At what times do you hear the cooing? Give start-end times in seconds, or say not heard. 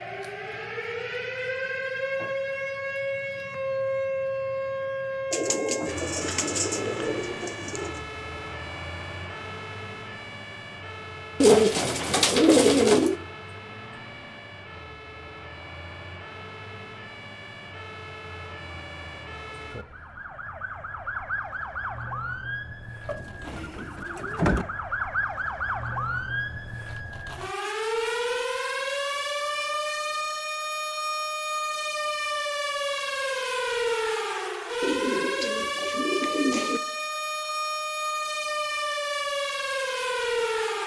5.3-8.0, 11.4-13.2, 23.1-24.6, 34.8-36.8.